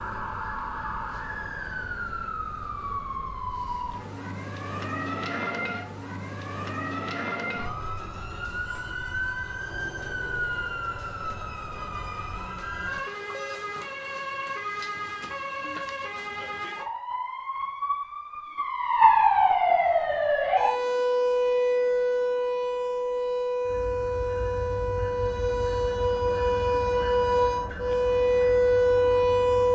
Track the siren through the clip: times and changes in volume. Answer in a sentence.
You can hear the siren from 0.0 to 29.7 s, getting louder.